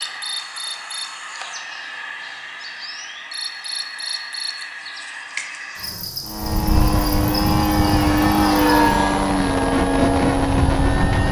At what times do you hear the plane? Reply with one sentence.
You can hear the plane from 6.2 to 11.2 s.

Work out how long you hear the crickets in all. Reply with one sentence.
You can hear the crickets for 9 seconds altogether.